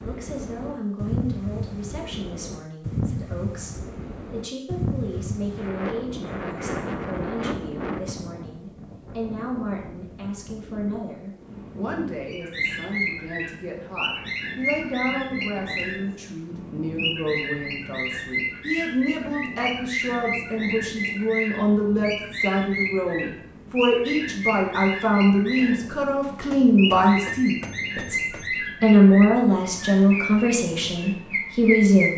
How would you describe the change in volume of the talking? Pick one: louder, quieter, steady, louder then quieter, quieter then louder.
louder.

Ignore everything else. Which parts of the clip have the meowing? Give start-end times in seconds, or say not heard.
not heard.